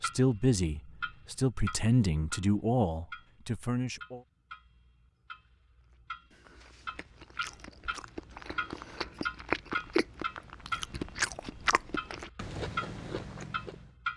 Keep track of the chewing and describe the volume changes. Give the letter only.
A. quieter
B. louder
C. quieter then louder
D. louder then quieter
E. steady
D.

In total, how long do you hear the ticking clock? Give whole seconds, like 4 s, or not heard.
14 s.